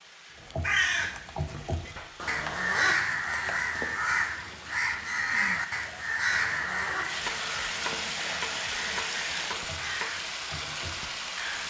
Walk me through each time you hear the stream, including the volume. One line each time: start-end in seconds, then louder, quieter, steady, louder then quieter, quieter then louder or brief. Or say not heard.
0.0-11.6 louder.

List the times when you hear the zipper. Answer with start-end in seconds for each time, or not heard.
2.1-3.9, 6.3-8.0.